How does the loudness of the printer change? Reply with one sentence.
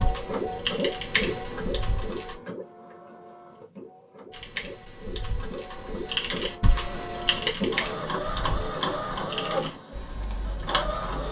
The loudness of the printer goes down, then up.